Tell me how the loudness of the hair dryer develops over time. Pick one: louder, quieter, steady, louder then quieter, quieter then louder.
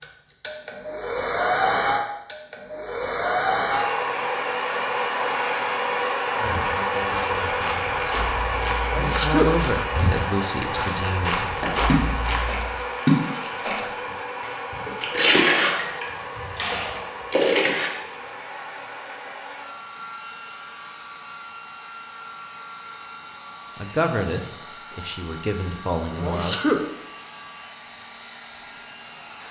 quieter.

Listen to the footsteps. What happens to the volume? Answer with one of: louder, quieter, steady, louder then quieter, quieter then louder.
louder.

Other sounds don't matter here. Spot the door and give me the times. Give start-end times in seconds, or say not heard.
not heard.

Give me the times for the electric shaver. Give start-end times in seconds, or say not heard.
not heard.